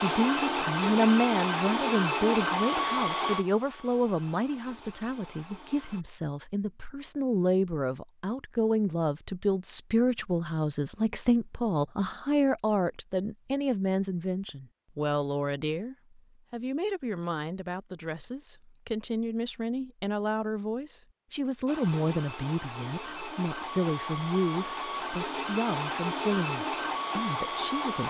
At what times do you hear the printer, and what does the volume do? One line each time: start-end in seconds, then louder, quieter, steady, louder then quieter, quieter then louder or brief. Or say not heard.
0.0-6.0 quieter
21.6-28.0 louder.